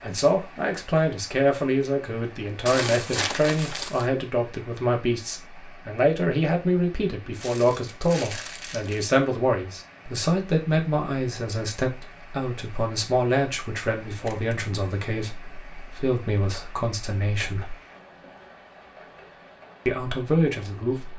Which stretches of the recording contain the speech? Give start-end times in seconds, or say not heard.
0.0-17.8, 19.9-21.1.